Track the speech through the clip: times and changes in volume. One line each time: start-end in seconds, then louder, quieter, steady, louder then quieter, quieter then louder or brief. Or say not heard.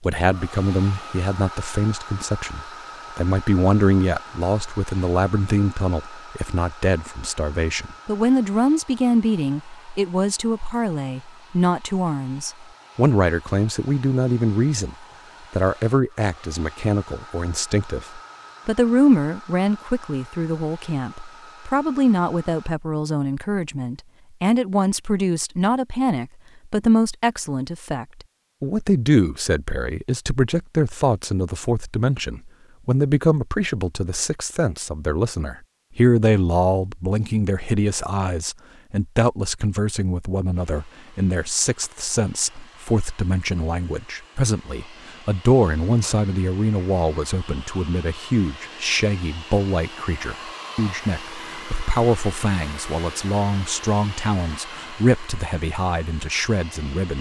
0.0-57.1 steady.